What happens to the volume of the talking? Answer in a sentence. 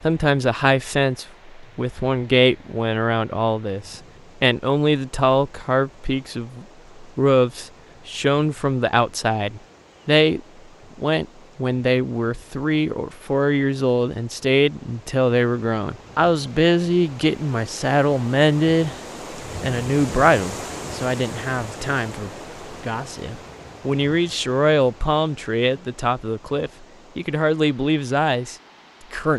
The loudness of the talking stays about the same.